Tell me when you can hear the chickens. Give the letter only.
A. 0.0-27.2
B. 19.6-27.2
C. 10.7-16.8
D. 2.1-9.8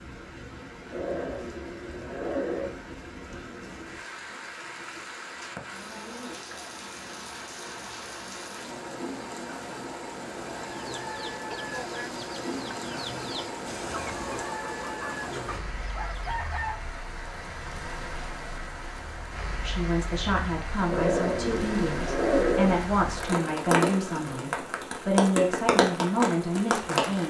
C.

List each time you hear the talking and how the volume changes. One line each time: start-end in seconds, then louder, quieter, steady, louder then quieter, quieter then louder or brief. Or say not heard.
19.6-27.2 steady.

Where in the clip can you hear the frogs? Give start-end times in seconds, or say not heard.
not heard.